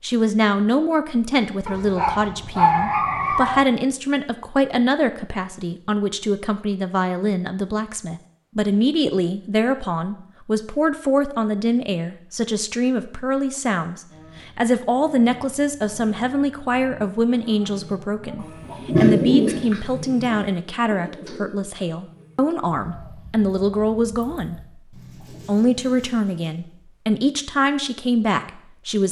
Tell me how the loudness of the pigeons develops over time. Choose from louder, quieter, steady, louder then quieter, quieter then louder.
quieter.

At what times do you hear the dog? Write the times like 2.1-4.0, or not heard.
1.6-3.6.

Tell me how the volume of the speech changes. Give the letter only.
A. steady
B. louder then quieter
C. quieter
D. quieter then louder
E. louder
A.